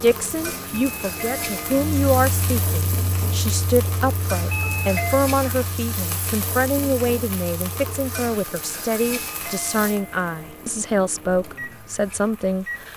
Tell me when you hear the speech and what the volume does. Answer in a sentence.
The speech can be heard from 0.0 to 12.9 s, at a steady volume.